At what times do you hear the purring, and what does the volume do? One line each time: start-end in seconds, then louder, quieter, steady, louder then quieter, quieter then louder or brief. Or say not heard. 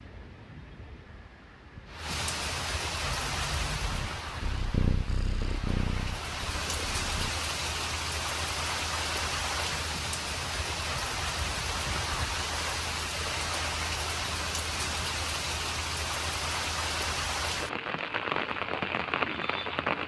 3.0-7.3 louder then quieter.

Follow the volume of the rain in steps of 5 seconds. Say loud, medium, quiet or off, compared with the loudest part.
medium, loud, loud, loud.